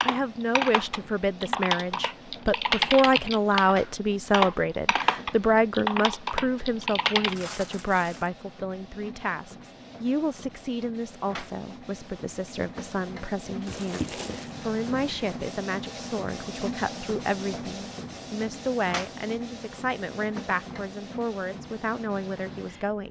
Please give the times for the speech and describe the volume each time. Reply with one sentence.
The speech can be heard from 0.0 to 23.0 s, getting quieter.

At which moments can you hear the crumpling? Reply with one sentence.
The crumpling can be heard from 7.2 to 8.3 s and from 13.7 to 14.6 s.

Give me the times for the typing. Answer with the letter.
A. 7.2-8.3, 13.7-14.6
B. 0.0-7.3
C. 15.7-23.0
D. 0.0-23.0
B.